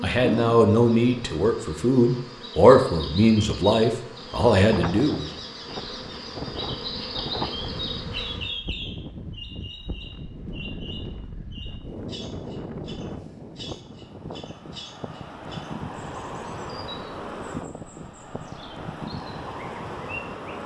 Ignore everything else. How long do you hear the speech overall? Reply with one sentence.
You can hear the speech for 5 seconds altogether.